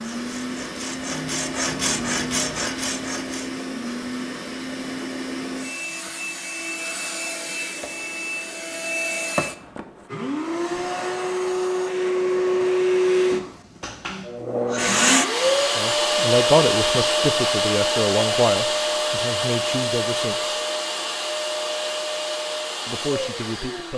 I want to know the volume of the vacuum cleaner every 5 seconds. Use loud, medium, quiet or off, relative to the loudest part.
medium, medium, loud, loud, medium.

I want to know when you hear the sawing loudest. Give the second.
2 s.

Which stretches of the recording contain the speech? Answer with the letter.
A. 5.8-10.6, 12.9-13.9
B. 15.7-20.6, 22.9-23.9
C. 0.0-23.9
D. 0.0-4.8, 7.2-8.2
B.